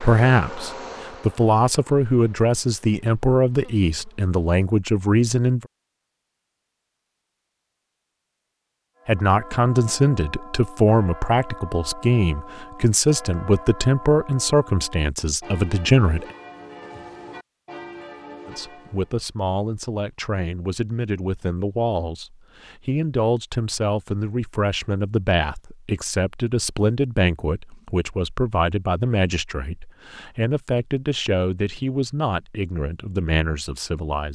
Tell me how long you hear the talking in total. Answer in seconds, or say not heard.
29 s.